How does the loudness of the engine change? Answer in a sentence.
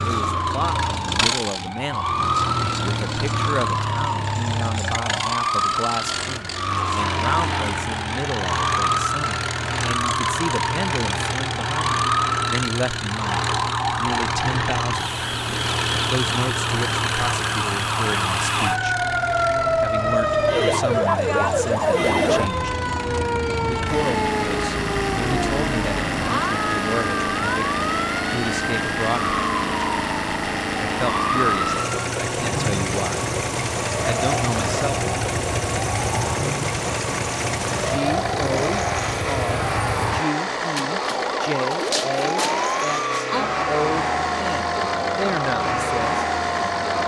The loudness of the engine stays about the same.